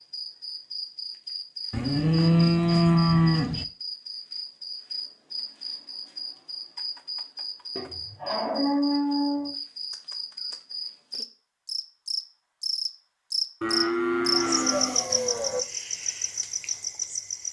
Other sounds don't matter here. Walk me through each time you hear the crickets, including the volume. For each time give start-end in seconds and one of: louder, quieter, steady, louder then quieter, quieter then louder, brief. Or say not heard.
0.0-17.4 louder.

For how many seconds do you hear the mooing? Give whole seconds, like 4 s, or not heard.
6 s.